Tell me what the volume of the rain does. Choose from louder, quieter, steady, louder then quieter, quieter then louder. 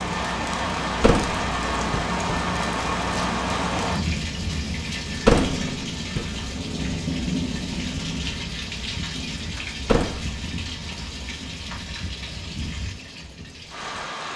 quieter.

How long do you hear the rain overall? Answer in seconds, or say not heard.
14 s.